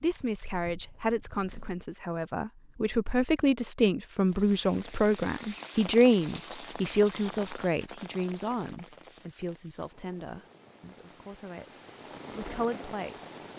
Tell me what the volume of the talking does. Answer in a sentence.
The volume of the talking goes up, then down.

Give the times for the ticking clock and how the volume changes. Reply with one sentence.
You can't hear the ticking clock here.